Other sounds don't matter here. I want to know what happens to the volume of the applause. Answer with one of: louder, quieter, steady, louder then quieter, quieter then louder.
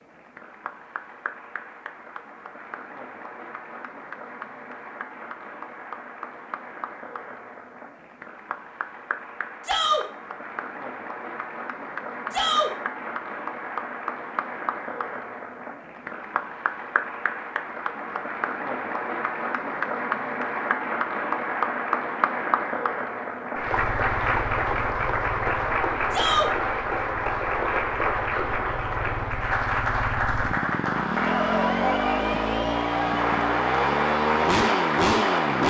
louder.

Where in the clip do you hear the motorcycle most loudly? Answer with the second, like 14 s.
35 s.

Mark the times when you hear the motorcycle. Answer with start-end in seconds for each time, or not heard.
23.6-35.6.